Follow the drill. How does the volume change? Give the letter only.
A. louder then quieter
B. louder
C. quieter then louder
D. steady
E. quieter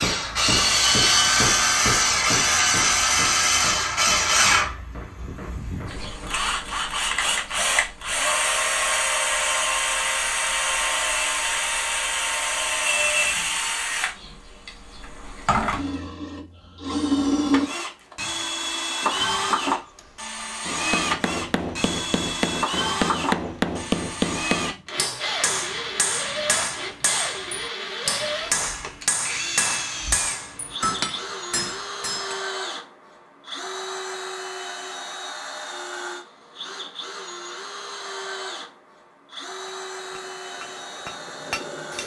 E.